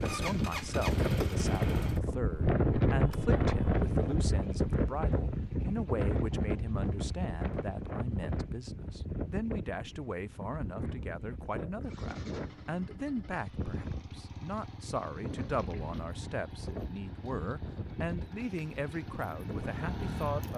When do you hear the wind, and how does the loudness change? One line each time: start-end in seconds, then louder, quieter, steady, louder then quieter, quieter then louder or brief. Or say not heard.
0.0-20.5 quieter.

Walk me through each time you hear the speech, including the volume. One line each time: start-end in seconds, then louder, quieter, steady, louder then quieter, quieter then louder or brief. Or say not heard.
0.0-20.5 steady.